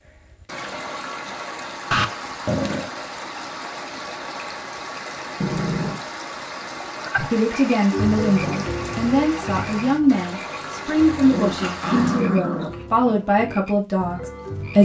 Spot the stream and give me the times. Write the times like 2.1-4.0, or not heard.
0.0-12.3.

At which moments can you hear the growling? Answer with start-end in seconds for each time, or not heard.
1.9-2.9, 5.4-6.0, 11.2-13.2.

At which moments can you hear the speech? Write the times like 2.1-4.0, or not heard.
7.3-14.8.